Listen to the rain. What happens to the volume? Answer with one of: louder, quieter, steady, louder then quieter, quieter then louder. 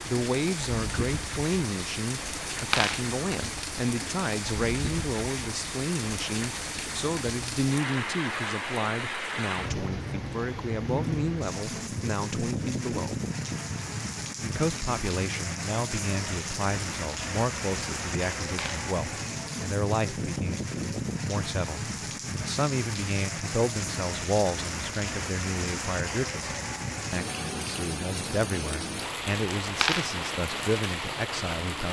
steady.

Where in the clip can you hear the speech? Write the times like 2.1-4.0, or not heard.
0.0-13.2, 14.4-26.4, 27.1-31.8.